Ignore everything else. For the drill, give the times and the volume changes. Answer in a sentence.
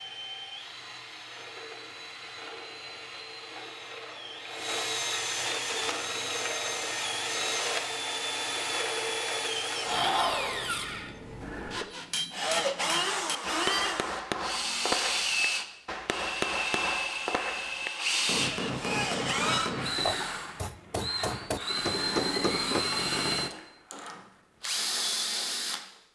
The drill can be heard from 0.0 to 25.9 s, getting louder.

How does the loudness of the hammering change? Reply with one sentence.
The loudness of the hammering stays about the same.